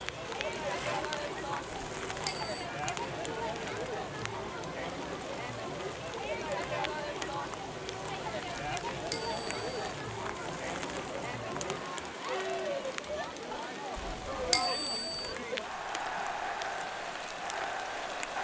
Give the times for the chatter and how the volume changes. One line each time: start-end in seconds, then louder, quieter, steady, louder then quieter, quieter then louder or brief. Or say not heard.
0.0-18.3 steady.